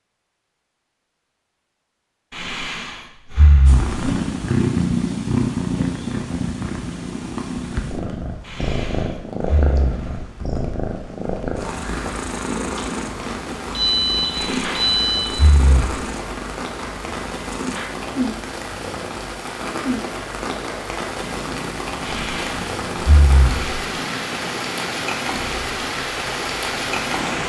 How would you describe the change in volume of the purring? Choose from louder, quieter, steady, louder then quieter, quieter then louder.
quieter.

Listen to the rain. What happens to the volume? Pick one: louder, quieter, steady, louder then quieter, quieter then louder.
louder.